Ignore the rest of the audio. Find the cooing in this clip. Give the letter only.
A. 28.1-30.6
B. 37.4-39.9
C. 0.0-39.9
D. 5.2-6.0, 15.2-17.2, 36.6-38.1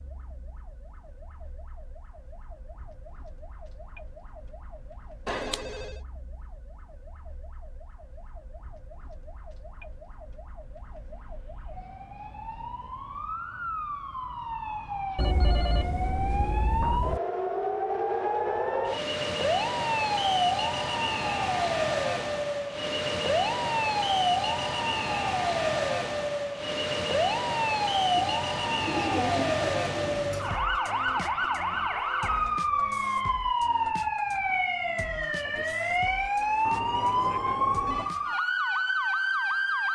A.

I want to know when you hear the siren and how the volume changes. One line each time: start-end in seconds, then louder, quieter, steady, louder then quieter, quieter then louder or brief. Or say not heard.
0.0-39.9 louder.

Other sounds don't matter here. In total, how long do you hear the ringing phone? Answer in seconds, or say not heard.
4 s.